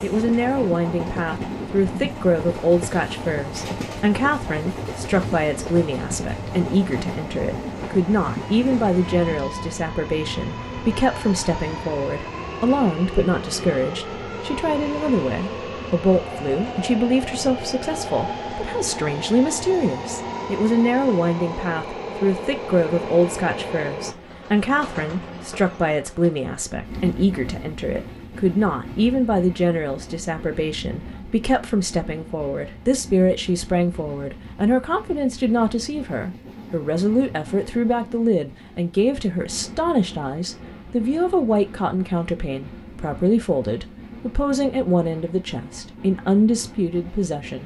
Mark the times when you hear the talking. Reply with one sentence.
You can hear the talking from 0.0 to 47.6 s.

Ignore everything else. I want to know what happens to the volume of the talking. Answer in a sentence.
The loudness of the talking stays about the same.